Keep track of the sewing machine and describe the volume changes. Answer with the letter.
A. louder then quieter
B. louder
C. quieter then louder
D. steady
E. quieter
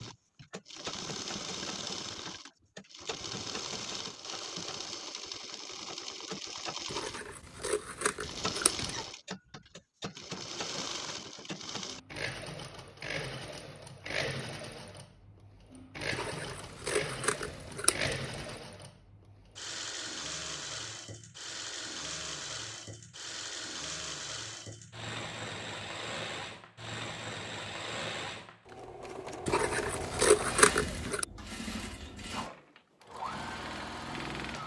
D.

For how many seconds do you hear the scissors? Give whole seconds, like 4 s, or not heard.
6 s.